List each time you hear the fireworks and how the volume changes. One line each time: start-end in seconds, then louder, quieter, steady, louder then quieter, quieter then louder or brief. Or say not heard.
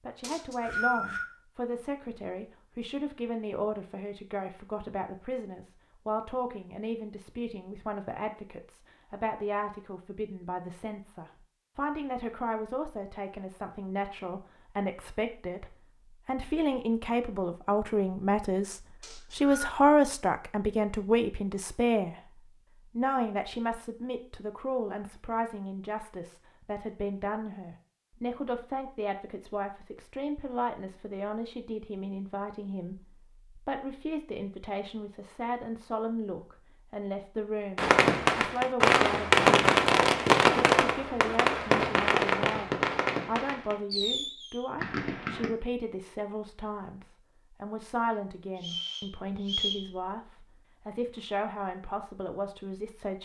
37.8-45.5 quieter.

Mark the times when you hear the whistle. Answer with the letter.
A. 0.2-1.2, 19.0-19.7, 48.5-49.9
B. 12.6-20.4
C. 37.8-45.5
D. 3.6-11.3
A.